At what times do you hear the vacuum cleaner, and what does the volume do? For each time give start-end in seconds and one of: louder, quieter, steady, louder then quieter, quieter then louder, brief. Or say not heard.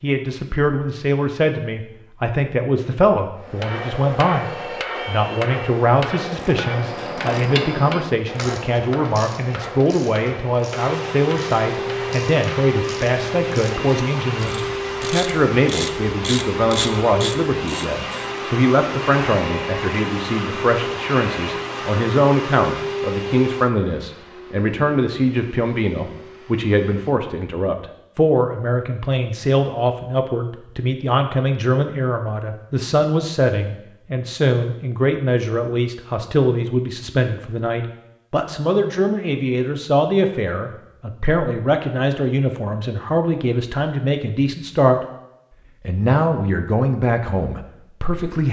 10.7-27.2 quieter.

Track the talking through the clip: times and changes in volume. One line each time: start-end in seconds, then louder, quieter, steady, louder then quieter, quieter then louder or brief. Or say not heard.
0.0-45.0 steady
45.9-48.4 brief.